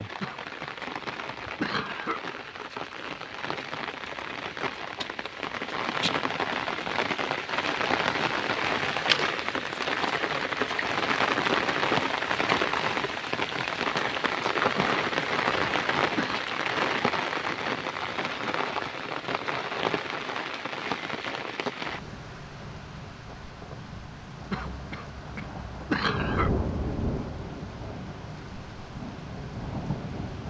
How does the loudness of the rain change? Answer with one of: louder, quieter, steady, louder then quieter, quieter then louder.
louder then quieter.